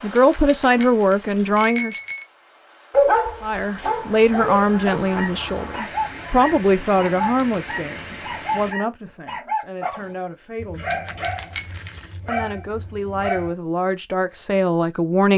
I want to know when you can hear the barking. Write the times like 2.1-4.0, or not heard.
2.9-13.5.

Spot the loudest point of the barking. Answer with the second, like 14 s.
3 s.